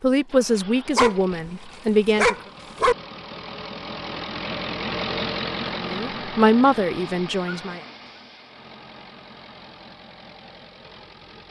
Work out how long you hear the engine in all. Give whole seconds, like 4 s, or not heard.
11 s.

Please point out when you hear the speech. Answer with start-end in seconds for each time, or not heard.
0.0-2.4, 5.8-7.8.